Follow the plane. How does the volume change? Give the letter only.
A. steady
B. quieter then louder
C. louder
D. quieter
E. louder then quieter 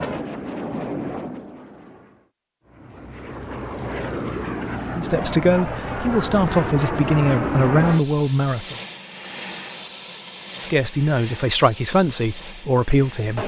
E.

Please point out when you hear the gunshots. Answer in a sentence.
The gunshots can't be heard in this clip.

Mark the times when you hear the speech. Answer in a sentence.
The speech can be heard from 4.9 to 8.8 s and from 10.6 to 13.4 s.